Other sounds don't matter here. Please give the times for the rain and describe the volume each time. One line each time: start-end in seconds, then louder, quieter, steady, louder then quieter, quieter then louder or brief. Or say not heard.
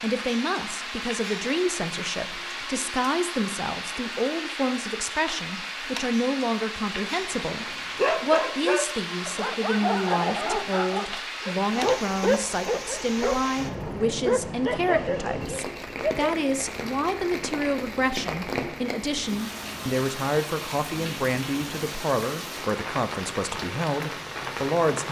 0.0-25.0 steady.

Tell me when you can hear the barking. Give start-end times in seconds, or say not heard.
7.5-16.3.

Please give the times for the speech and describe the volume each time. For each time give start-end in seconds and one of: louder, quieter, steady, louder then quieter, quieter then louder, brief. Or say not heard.
0.0-25.0 steady.